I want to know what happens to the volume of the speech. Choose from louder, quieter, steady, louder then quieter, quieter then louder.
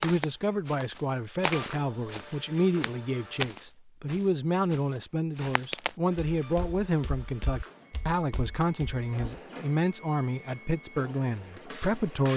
steady.